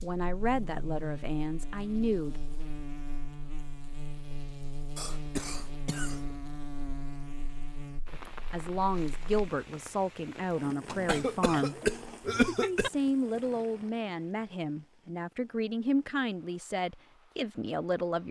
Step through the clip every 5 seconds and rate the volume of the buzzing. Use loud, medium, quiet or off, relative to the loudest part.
loud, loud, off, off.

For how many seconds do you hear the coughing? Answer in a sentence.
The coughing can be heard for 3 seconds in total.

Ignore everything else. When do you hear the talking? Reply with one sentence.
The talking can be heard from 0.0 to 2.4 s, from 8.1 to 11.8 s and from 12.6 to 18.2 s.